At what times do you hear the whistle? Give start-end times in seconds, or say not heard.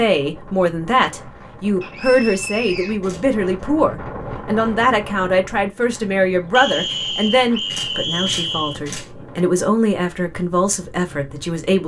1.8-3.0, 6.5-8.8.